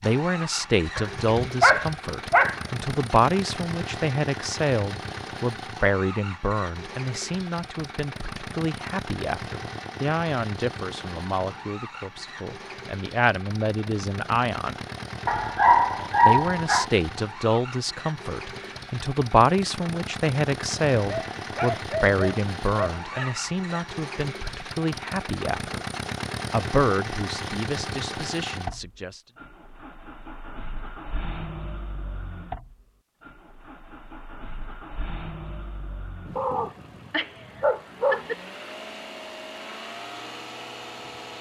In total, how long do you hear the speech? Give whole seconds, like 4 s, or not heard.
27 s.